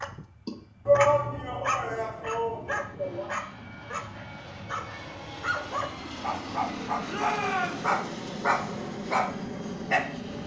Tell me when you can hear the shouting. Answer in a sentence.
You can hear the shouting from 0.8 to 3.3 s and from 7.0 to 7.9 s.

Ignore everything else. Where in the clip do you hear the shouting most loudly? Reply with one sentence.
The volume of the shouting peaks at 1 second.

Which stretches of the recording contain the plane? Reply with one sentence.
You can hear the plane from 0.0 to 10.4 s.